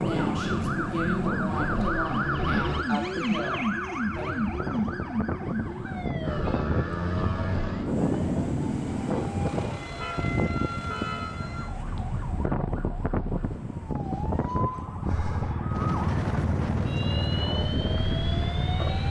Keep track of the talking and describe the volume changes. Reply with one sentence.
The loudness of the talking stays about the same.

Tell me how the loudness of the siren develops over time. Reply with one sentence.
The volume of the siren goes down.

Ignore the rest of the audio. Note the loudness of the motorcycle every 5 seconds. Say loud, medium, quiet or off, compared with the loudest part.
loud, loud, off, loud.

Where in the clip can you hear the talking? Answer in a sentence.
The talking can be heard from 0.0 to 4.3 s.